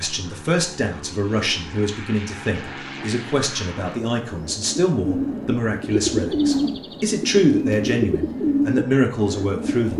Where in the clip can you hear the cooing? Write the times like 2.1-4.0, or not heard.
4.2-9.9.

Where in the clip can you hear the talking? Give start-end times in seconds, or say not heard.
0.0-9.9.